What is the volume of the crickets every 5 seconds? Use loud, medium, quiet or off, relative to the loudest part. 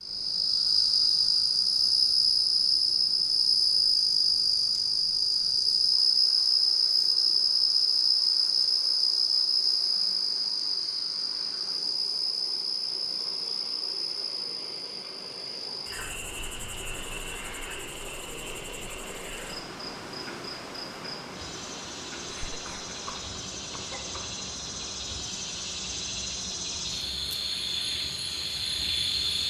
loud, loud, medium, quiet, quiet, medium.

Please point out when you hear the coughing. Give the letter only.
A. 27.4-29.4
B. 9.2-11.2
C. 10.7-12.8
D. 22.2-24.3
D.